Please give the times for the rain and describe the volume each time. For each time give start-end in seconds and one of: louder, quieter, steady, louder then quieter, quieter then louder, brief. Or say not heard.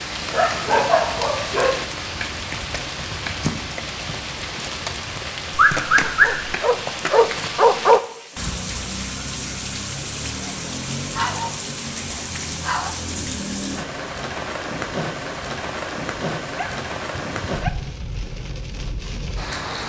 0.0-19.8 steady.